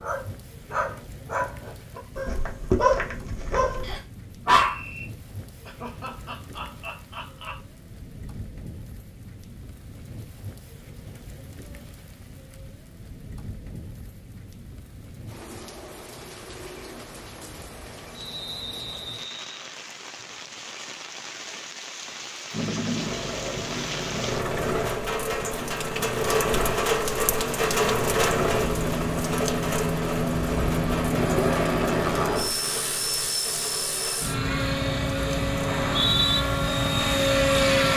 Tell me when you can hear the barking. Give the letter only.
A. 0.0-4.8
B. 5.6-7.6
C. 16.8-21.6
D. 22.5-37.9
A.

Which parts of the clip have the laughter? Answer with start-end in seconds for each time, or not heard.
5.6-7.6.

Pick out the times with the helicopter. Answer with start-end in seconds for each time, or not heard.
22.5-37.9.